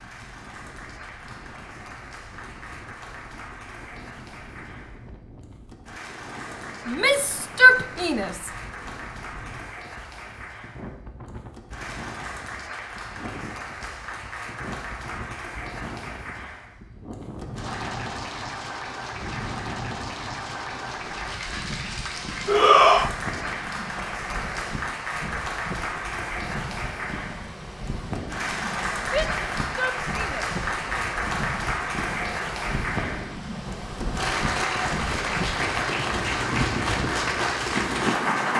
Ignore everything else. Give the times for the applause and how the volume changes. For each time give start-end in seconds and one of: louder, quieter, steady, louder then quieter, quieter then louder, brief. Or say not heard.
0.0-38.5 louder.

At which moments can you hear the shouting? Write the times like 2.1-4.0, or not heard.
6.8-8.5, 22.4-23.1, 29.0-31.1.